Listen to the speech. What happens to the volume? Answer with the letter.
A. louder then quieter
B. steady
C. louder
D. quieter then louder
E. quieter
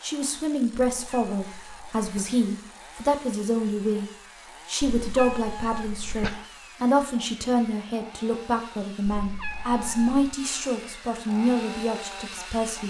B.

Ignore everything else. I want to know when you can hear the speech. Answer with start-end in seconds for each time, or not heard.
0.0-12.8.